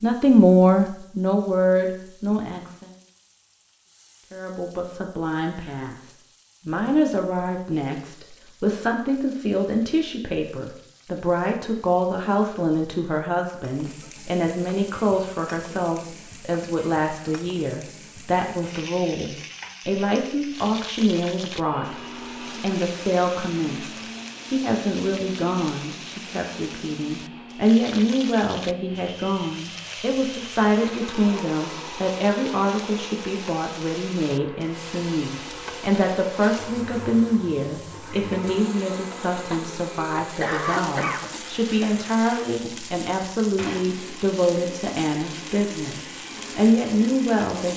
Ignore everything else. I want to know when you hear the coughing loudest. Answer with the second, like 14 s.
41 s.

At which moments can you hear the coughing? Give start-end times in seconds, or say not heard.
40.4-42.0.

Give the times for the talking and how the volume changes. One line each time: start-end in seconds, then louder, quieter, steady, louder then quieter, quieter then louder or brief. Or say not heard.
0.0-2.9 brief
4.3-22.0 steady
22.6-47.7 steady.